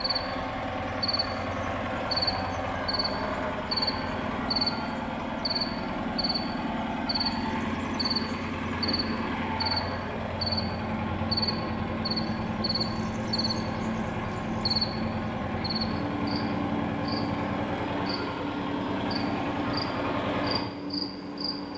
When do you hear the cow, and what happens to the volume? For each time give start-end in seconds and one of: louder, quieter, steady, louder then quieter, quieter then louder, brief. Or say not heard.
not heard.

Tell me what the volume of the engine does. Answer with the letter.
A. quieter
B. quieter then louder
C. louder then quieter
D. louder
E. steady
E.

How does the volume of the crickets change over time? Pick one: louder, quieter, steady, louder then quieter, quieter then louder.
steady.